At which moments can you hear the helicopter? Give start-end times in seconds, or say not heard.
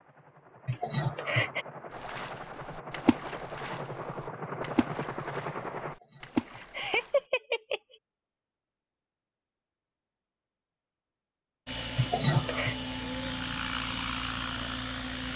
0.0-6.0, 11.7-15.3.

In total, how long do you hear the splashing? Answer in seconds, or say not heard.
5 s.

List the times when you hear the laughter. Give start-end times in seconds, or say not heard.
0.7-1.6, 6.5-7.8, 11.9-12.8.